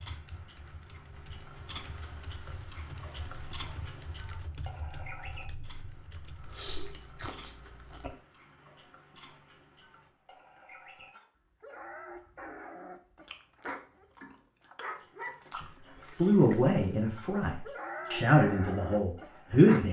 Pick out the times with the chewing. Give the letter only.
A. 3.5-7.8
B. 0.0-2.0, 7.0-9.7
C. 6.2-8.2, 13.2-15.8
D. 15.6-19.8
C.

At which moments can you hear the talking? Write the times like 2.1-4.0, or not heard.
15.6-19.8.